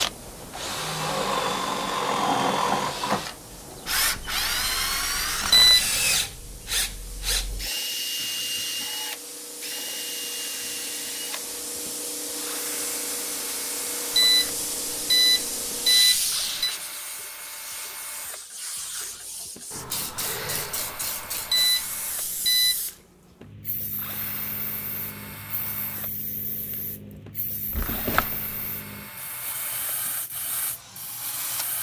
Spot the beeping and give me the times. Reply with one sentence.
You can hear the beeping from 5.5 to 6.0 s, from 14.2 to 16.8 s and from 21.5 to 22.8 s.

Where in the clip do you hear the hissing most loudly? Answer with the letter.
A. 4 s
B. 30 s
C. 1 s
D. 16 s
D.